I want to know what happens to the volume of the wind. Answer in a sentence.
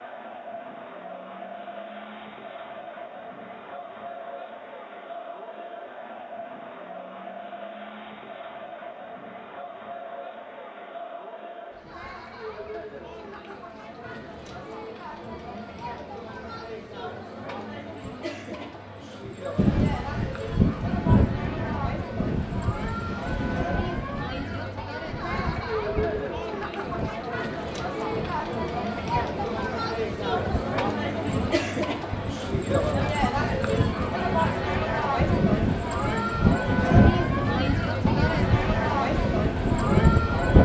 The loudness of the wind goes down, then up.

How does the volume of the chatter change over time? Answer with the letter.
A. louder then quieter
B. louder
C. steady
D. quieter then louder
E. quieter
B.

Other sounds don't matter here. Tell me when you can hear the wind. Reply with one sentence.
You can hear the wind from 19.6 to 40.6 s.